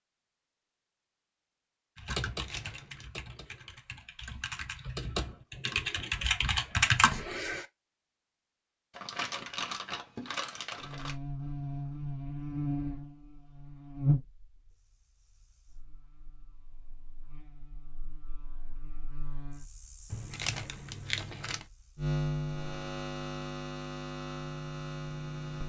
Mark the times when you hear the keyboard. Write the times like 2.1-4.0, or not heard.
1.9-7.7.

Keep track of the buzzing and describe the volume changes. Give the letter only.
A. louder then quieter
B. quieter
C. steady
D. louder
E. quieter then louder
E.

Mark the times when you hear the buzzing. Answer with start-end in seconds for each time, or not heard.
10.8-25.6.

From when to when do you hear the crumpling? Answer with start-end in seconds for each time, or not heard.
2.2-3.1, 8.9-11.2, 20.1-21.6.